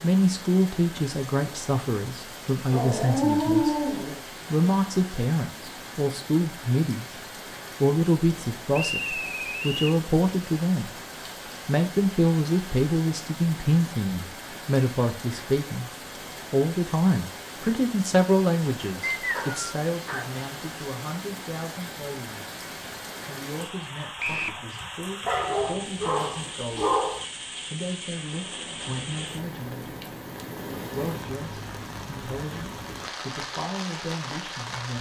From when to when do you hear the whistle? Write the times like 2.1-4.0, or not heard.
8.8-9.9, 19.0-19.6, 24.1-24.6.